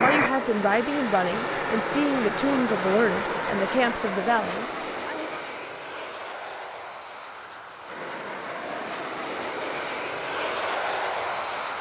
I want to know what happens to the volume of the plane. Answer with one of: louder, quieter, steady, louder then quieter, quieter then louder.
quieter then louder.